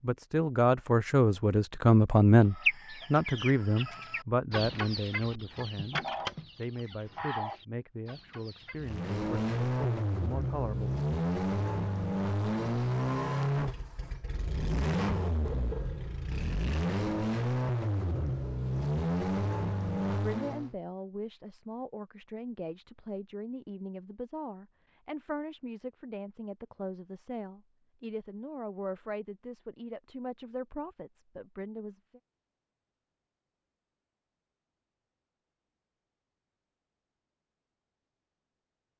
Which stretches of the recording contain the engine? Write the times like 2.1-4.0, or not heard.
8.8-20.8.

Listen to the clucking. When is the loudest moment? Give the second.
3 s.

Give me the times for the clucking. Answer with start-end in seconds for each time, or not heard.
2.5-8.8.